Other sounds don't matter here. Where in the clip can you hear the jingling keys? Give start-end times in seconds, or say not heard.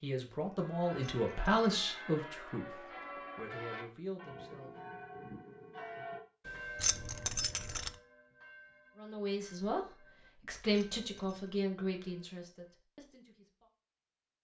1.0-1.8, 6.8-7.9, 10.7-11.5.